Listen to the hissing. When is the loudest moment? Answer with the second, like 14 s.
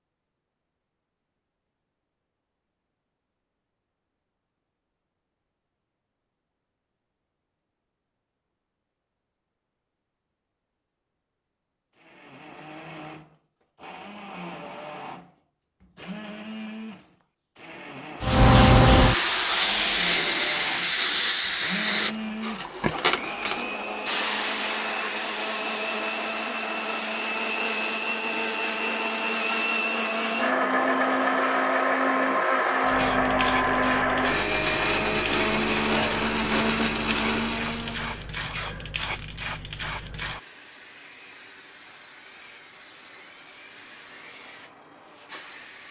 19 s.